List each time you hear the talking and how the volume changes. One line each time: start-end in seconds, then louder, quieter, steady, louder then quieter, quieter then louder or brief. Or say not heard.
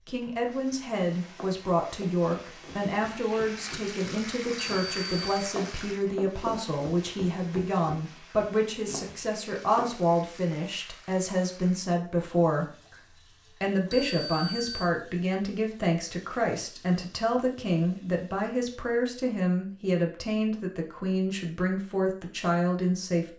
0.1-23.3 steady.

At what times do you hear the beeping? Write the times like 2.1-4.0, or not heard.
4.5-5.5, 13.9-14.9.